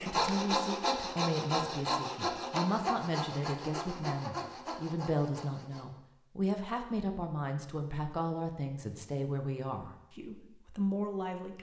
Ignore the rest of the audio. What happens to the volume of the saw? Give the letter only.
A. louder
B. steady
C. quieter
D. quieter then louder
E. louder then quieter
C.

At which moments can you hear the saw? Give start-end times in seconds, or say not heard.
0.0-5.8.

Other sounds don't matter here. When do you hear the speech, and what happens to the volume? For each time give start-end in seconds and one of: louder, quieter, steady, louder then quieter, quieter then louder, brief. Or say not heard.
0.0-11.5 steady.